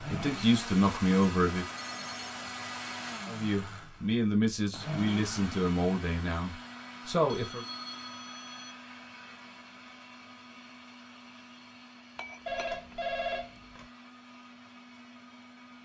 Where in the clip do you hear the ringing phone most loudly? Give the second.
13 s.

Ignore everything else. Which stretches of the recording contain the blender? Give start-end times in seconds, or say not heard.
0.0-15.8.